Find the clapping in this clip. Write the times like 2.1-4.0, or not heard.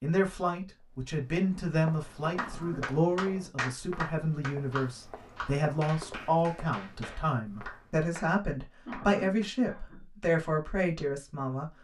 2.4-8.2, 8.9-9.5.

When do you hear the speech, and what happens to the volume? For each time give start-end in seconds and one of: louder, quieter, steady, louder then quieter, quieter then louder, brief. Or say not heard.
0.0-11.7 steady.